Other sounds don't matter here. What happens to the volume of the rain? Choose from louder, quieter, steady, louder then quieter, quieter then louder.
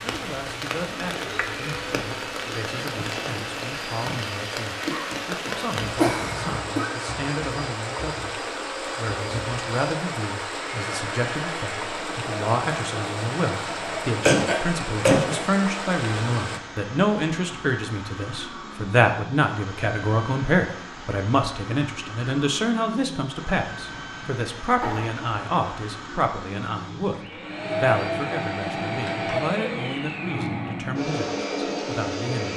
steady.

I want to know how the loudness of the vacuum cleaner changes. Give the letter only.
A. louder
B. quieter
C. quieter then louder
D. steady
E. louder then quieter
A.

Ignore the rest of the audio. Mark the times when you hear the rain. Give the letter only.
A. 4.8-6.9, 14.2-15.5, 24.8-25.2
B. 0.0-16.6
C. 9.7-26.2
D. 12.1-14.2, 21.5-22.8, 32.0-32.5
B.